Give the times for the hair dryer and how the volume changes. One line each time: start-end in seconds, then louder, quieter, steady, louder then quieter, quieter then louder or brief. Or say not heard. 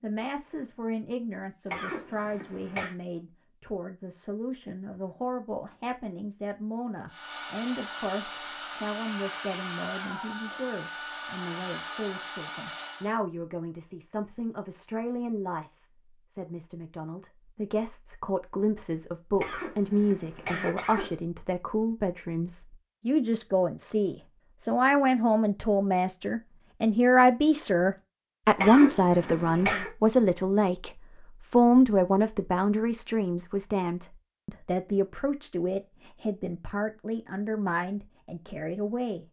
7.0-13.2 steady.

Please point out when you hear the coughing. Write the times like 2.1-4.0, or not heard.
1.6-3.0, 19.4-21.2, 28.6-29.9.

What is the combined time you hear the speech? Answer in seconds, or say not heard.
39 s.